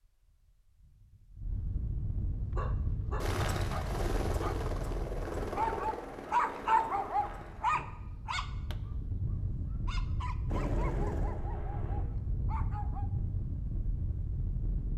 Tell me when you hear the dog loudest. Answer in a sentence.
The volume of the dog peaks at 7 seconds.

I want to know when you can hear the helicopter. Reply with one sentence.
You can hear the helicopter from 3.2 to 7.8 s and from 10.4 to 12.1 s.